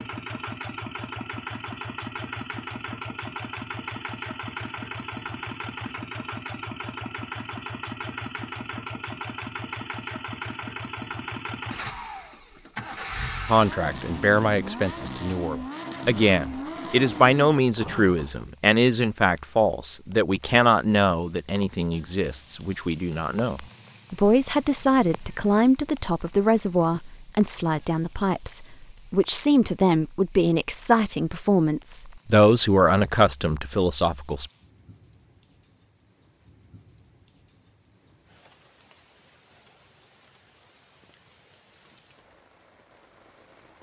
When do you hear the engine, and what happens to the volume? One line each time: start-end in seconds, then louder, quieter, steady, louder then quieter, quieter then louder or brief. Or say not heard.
0.0-18.4 steady.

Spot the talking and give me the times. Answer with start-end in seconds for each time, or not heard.
13.4-34.5.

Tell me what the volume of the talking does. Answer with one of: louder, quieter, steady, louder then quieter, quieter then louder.
steady.